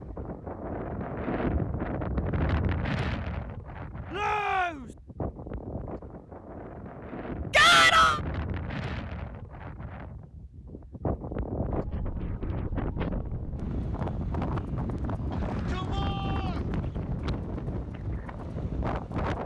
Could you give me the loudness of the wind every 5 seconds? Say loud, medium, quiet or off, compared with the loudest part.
loud, medium, loud, loud.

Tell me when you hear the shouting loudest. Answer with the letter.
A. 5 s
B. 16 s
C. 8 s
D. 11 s
C.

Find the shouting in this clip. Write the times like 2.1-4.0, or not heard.
4.1-4.8, 7.5-8.2, 15.3-16.6.